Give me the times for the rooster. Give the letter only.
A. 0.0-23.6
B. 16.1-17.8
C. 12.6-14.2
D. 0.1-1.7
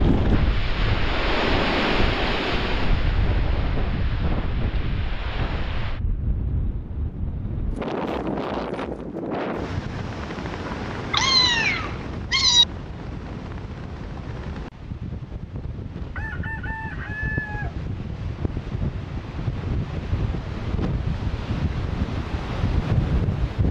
B.